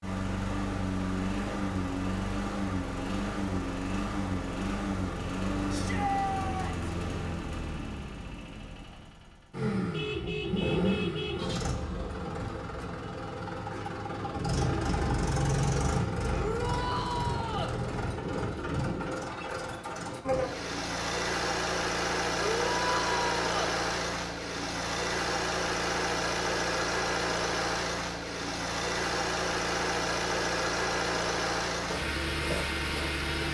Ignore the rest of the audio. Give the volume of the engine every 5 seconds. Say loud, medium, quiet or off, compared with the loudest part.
loud, medium, loud, loud, loud, loud, loud.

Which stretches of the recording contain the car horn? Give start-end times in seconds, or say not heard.
9.9-11.4.